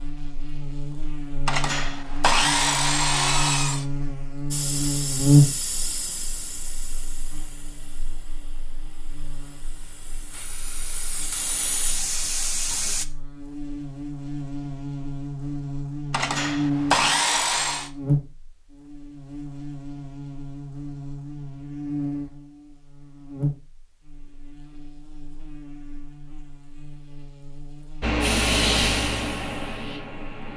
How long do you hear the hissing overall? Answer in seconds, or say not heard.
11 s.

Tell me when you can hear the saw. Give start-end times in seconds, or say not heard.
1.4-3.9, 16.1-17.9.